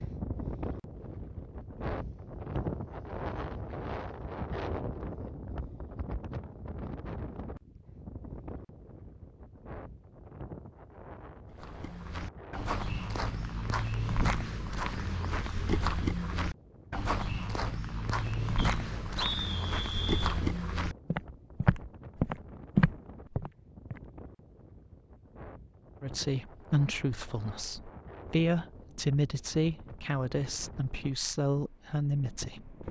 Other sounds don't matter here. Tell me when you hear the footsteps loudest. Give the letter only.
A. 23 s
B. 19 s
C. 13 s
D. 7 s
A.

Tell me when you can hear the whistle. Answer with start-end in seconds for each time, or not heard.
18.6-20.4.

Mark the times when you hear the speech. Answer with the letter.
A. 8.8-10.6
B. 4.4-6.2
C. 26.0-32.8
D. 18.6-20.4
C.